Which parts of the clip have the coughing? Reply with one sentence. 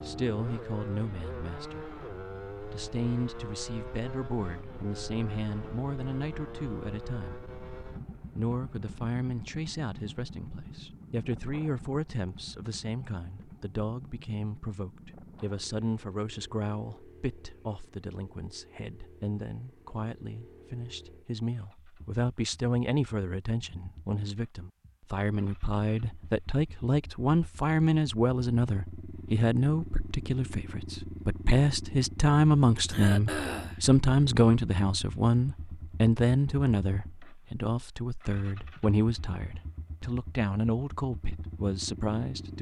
The coughing can be heard from 32.9 to 33.8 s.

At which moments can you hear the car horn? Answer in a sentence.
The car horn can't be heard in this clip.